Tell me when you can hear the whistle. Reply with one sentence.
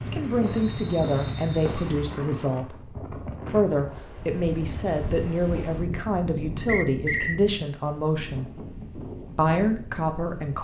The whistle can be heard from 0.4 to 1.8 s and from 6.7 to 7.3 s.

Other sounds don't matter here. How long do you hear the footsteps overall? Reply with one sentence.
You can hear the footsteps for 2 seconds altogether.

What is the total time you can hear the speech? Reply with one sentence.
The speech can be heard for 10 seconds in total.